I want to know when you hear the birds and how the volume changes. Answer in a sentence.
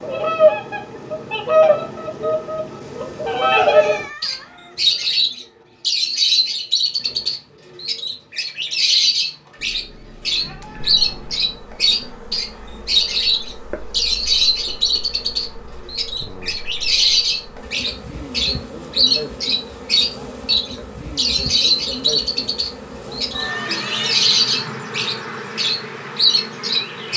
The birds can be heard from 0.0 to 27.1 s, at a steady volume.